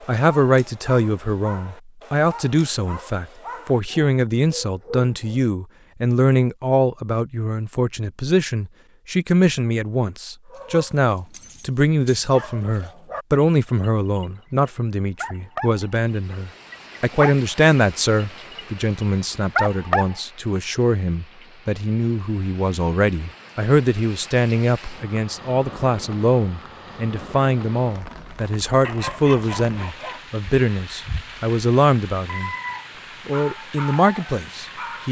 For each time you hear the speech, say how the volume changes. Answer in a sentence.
You can hear the speech from 0.1 to 32.5 s, at a steady volume; and briefly from 33.2 to 35.0 s.